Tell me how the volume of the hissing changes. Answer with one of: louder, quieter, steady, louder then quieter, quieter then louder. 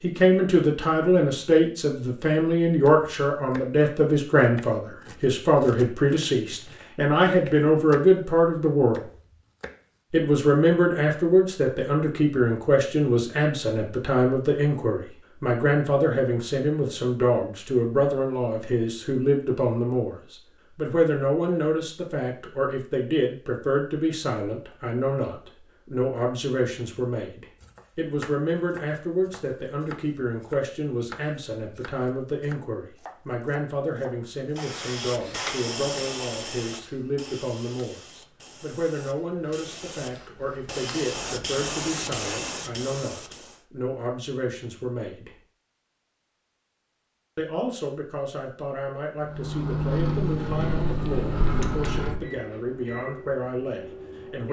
quieter then louder.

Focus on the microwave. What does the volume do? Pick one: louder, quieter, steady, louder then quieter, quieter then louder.
quieter.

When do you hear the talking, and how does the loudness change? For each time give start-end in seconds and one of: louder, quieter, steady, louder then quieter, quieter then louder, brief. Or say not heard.
0.0-9.0 steady
10.1-45.4 quieter
47.4-54.4 steady.